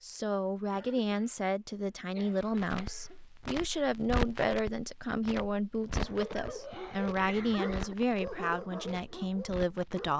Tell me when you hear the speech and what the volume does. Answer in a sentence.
The speech can be heard from 0.0 to 10.1 s, at a steady volume.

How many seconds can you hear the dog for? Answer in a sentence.
The dog can be heard for 4 seconds in total.